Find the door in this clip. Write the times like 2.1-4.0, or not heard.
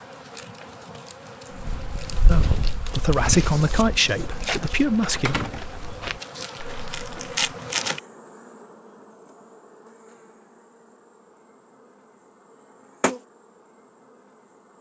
5.2-6.1.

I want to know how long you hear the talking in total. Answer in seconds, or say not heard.
3 s.